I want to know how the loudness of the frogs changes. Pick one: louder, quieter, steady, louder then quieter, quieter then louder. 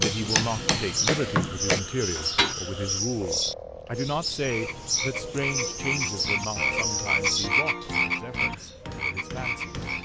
louder.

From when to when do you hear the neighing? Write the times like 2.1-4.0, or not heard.
not heard.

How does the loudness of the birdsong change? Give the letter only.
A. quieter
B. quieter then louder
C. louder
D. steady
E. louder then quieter
A.